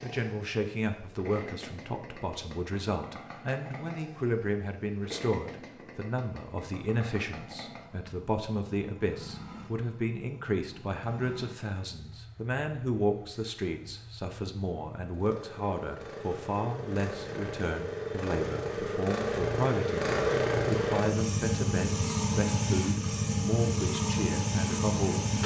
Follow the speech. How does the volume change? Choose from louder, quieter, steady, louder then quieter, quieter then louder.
steady.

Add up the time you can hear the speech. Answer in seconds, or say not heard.
25 s.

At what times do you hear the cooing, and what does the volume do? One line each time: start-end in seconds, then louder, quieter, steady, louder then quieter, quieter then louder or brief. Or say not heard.
not heard.